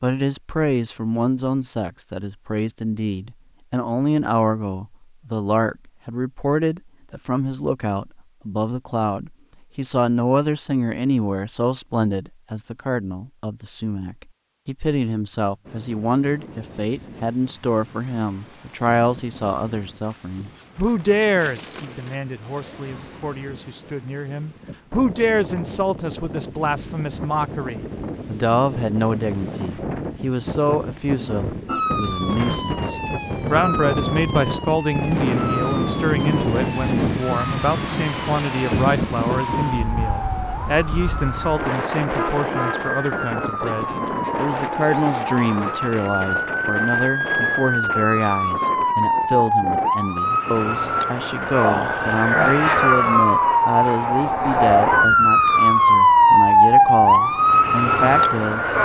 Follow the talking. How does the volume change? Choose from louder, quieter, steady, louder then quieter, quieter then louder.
steady.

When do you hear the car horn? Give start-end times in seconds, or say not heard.
42.0-42.8.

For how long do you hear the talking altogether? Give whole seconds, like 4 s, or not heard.
59 s.